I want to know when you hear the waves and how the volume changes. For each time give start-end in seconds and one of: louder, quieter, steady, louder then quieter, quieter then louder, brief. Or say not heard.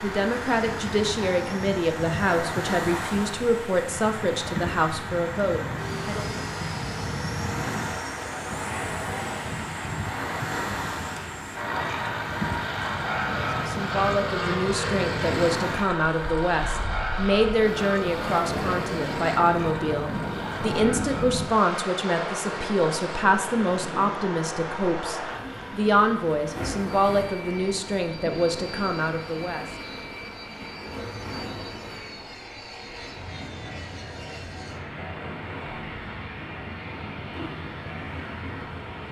0.0-39.0 quieter.